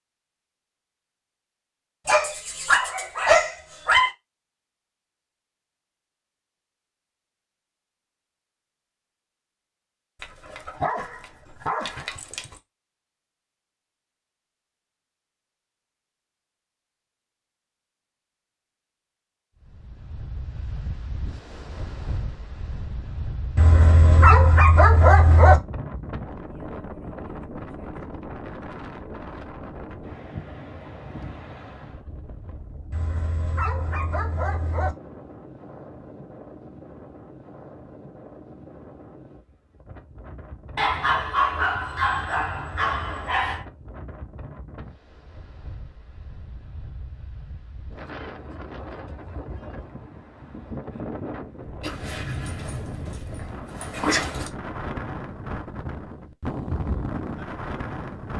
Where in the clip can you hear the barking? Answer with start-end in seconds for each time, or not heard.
2.0-4.1, 10.2-12.6, 23.6-25.6, 32.9-35.0, 40.8-43.6, 51.8-54.5.